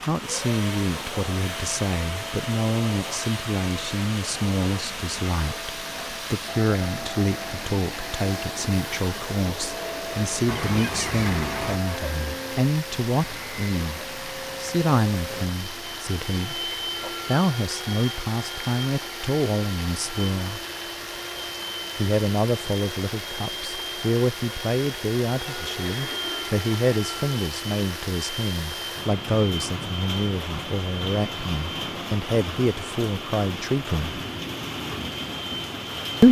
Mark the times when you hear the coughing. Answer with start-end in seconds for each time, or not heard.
10.4-11.9.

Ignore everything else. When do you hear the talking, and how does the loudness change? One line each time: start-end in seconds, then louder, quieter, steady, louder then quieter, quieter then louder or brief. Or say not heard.
0.1-20.6 steady
21.9-34.2 steady.